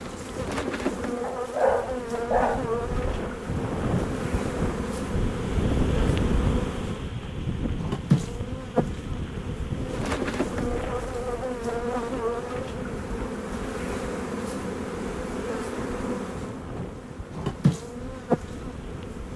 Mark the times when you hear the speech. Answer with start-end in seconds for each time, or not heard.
not heard.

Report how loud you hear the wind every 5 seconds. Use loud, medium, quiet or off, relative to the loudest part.
loud, loud, medium, medium.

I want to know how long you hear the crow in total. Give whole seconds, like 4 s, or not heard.
not heard.